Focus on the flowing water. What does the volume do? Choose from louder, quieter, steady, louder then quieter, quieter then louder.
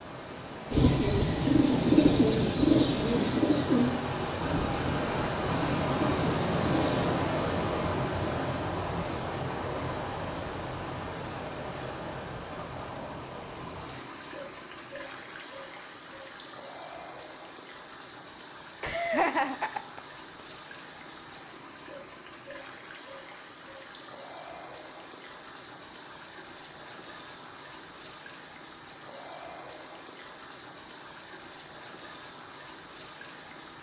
quieter.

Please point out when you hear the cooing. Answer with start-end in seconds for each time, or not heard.
0.7-7.2.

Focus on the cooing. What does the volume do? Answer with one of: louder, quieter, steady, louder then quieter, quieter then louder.
quieter.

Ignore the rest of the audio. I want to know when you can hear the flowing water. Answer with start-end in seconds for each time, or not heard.
0.0-33.7.